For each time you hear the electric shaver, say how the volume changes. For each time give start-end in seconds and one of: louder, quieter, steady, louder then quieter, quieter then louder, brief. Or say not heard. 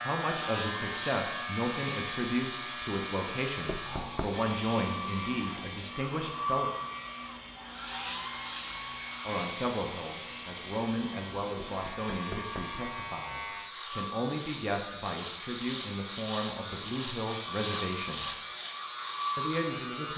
0.0-20.1 quieter then louder.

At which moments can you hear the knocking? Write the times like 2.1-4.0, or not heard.
3.6-4.3, 11.7-12.8.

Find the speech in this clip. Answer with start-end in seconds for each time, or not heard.
0.0-6.7, 9.2-18.3, 19.4-20.1.